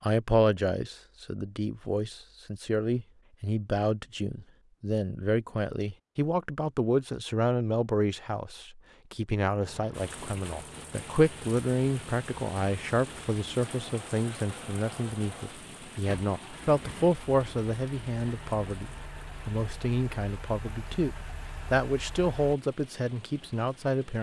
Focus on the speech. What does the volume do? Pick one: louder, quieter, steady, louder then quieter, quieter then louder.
steady.